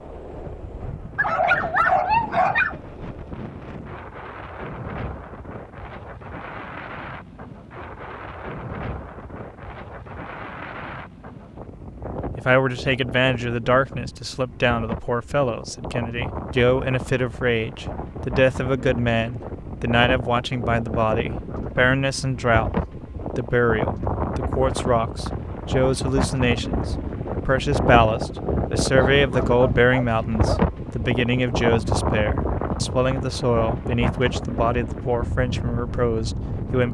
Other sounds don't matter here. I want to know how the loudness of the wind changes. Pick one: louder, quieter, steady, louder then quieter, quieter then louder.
louder.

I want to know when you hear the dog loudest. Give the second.
2 s.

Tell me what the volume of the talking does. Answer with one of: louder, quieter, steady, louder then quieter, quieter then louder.
steady.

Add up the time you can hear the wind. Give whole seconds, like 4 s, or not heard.
37 s.